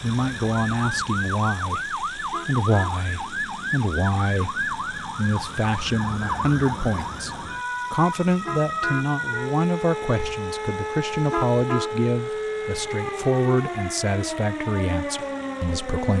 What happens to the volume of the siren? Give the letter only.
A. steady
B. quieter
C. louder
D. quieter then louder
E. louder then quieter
A.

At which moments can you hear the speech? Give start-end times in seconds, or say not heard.
0.0-7.3, 7.9-16.1.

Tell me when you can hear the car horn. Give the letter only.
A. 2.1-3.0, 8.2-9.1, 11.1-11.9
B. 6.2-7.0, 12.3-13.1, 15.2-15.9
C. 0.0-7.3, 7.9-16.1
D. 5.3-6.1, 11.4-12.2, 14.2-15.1
A.